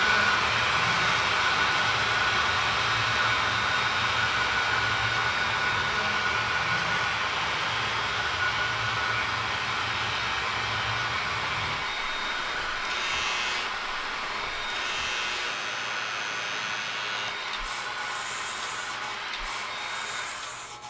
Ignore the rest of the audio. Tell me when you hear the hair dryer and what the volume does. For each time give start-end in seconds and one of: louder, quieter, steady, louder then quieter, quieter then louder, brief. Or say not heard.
0.0-20.8 quieter.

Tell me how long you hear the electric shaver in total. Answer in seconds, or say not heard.
21 s.